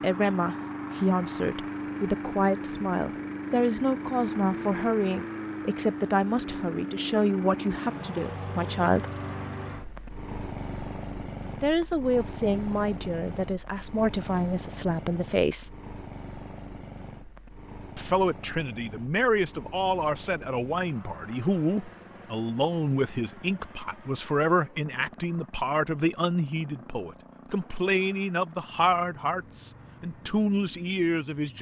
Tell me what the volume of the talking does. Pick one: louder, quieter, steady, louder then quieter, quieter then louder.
steady.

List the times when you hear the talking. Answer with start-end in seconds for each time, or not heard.
0.0-9.1, 11.6-15.7, 17.9-31.5.